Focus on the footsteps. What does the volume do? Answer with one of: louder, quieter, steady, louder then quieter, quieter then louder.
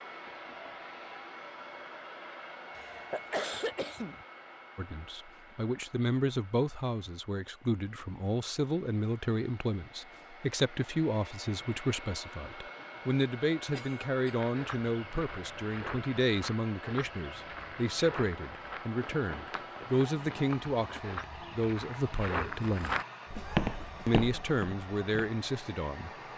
louder.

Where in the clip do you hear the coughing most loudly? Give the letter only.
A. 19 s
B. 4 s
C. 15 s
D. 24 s
B.